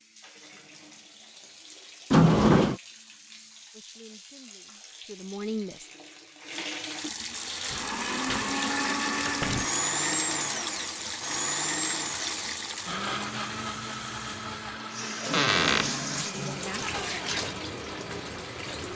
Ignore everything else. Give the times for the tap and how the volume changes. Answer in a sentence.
The tap can be heard from 0.0 to 18.9 s, getting louder.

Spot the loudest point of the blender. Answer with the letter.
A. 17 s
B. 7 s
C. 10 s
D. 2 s
C.